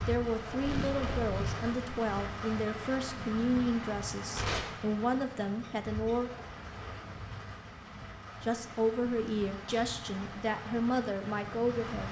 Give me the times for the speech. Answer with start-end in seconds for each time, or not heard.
0.1-6.3, 8.4-12.0.